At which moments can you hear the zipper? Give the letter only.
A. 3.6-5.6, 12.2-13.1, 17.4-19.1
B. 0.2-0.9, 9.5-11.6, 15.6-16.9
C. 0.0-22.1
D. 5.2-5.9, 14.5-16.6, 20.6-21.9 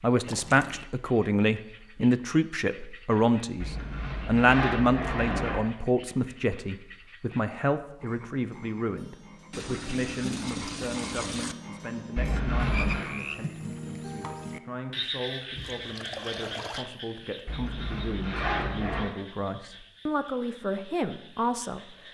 A.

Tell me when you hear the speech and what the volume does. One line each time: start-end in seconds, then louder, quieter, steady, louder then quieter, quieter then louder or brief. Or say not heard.
0.0-22.1 quieter then louder.